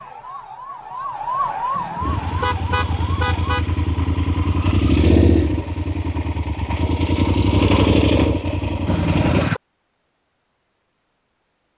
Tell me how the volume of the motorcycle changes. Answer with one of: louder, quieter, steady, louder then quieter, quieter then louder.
louder.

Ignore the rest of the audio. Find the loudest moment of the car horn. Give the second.
9 s.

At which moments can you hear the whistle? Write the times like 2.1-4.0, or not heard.
not heard.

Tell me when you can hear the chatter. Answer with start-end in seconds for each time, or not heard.
not heard.